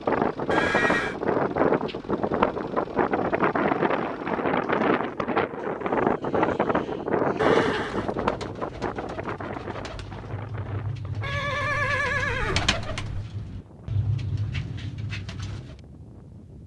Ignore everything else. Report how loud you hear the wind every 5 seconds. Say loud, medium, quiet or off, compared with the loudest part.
loud, loud, quiet, quiet.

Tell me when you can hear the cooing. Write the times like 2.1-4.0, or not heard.
4.5-15.8.